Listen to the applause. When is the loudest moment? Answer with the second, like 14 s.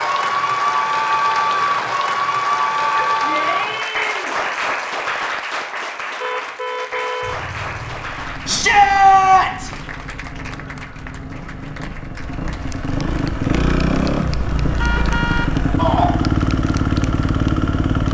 1 s.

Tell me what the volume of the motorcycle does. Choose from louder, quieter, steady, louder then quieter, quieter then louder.
louder.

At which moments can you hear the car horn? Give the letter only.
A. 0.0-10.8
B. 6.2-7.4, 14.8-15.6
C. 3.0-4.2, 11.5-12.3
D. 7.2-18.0
B.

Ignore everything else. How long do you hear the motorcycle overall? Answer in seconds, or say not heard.
11 s.